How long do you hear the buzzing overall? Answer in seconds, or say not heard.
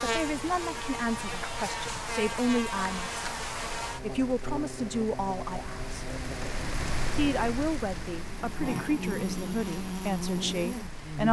11 s.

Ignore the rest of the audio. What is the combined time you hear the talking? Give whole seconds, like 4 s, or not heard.
9 s.